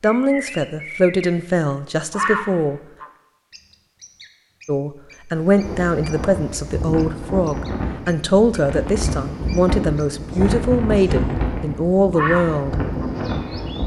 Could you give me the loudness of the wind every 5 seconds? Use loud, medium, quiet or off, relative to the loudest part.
off, loud, loud.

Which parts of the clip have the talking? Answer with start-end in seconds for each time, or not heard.
0.0-2.8, 4.7-12.8.